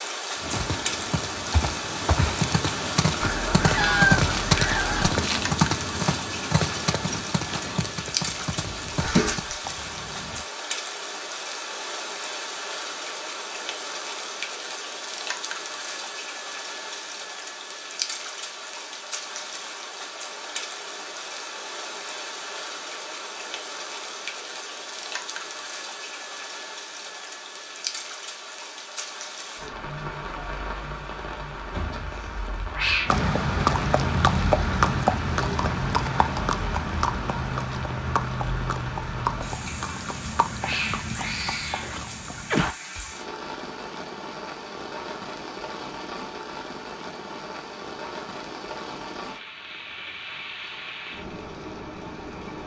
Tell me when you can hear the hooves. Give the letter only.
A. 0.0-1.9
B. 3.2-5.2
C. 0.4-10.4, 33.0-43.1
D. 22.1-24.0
C.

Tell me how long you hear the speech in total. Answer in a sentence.
You can't hear the speech here.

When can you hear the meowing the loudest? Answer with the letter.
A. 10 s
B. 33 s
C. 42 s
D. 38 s
B.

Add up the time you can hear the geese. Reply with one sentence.
The geese can be heard for 2 seconds in total.